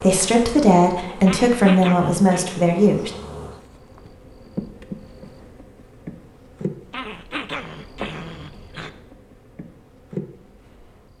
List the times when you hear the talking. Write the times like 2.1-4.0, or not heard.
0.0-3.1.